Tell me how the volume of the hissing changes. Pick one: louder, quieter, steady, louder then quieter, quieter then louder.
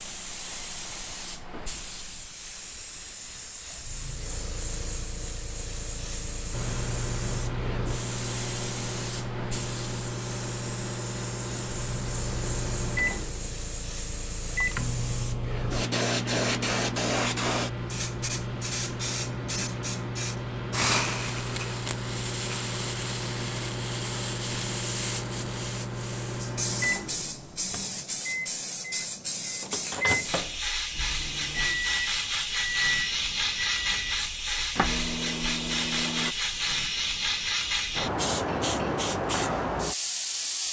louder.